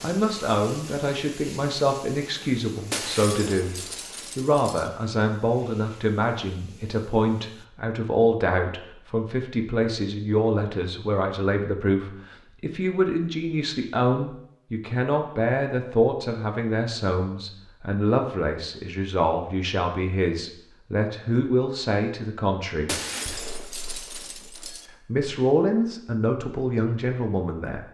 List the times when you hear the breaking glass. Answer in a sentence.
The breaking glass can be heard from 2.9 to 4.9 s and from 22.9 to 24.9 s.